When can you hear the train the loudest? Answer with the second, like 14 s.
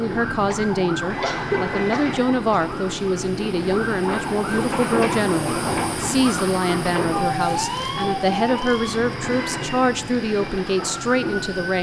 5 s.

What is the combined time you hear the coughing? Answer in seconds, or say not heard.
2 s.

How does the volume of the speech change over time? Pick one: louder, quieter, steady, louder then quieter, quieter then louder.
steady.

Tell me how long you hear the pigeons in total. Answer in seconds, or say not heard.
not heard.